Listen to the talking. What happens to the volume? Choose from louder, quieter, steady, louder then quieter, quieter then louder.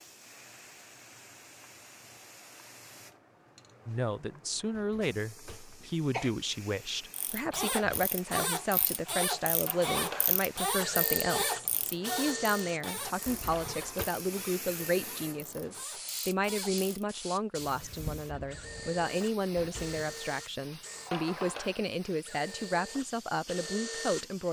steady.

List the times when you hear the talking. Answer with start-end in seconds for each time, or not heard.
3.9-24.4.